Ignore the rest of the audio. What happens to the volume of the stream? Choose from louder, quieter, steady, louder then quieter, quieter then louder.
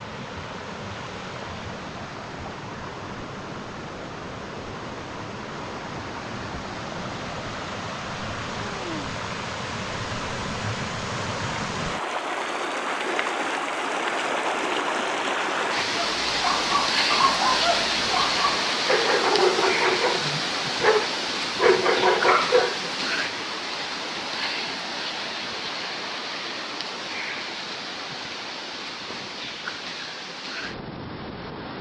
louder then quieter.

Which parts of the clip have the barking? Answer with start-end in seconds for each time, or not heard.
15.9-22.9.